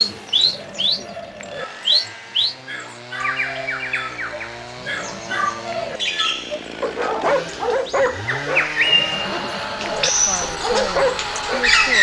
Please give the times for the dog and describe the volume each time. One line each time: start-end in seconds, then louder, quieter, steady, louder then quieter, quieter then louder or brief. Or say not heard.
1.1-11.7 louder.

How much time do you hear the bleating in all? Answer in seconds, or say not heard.
4 s.